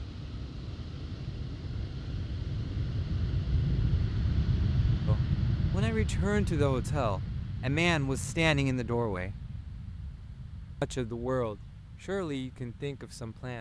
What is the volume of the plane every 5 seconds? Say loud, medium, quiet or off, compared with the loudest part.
loud, loud, quiet.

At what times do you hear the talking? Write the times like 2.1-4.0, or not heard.
5.0-9.3, 10.8-13.5.